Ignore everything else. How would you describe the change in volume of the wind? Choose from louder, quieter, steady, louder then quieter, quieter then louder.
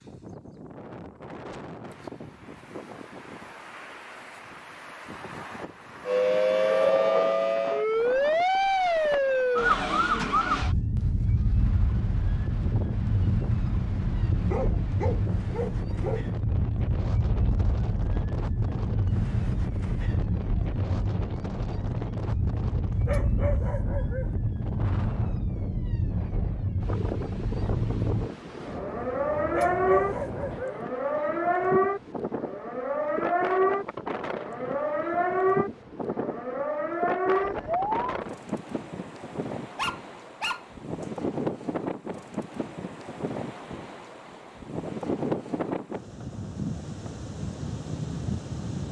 louder.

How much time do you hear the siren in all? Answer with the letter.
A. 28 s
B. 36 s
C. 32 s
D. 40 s
C.